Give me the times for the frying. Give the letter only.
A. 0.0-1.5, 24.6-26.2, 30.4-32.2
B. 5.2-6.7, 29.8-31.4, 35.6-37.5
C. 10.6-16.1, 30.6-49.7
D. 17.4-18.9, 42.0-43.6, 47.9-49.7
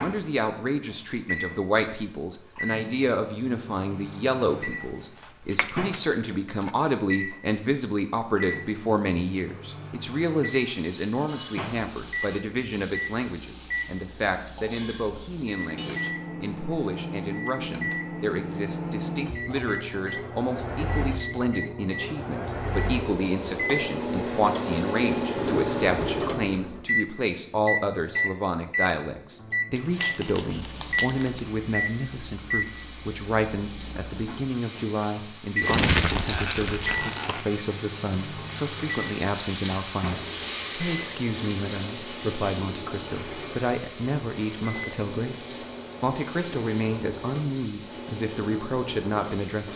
C.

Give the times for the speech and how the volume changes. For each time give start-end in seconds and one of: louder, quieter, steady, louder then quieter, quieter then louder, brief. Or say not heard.
0.0-49.7 steady.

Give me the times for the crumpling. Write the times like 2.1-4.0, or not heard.
5.2-6.7, 29.8-31.4, 35.6-37.5.